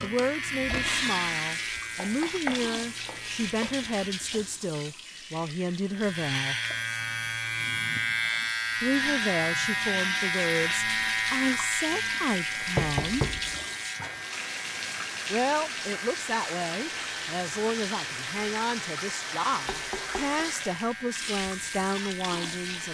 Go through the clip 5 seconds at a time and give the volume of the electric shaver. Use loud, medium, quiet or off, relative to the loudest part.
medium, loud, loud, medium, medium.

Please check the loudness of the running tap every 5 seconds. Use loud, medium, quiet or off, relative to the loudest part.
loud, medium, loud, loud, loud.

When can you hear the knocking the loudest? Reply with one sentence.
The loudest moment of the knocking is at 13 seconds.